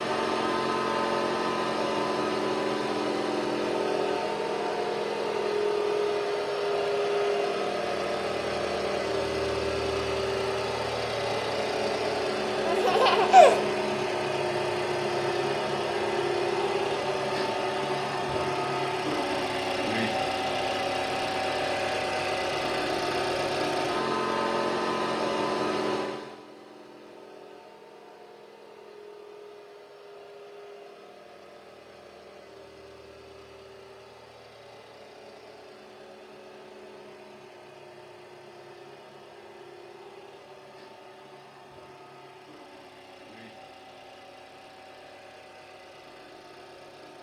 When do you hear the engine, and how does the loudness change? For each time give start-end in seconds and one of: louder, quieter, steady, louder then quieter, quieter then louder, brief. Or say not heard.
0.0-47.1 quieter.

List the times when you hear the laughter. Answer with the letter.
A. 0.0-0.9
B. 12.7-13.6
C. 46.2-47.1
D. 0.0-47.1
B.